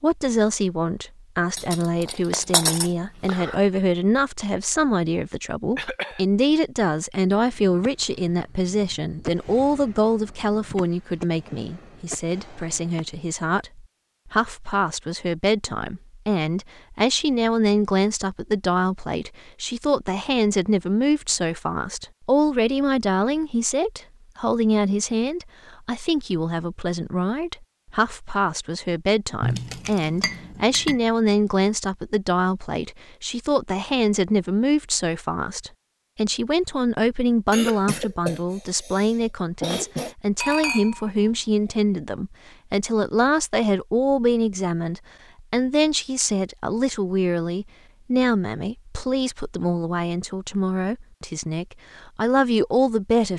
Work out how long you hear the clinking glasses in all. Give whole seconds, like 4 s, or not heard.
5 s.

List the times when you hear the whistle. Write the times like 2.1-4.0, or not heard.
not heard.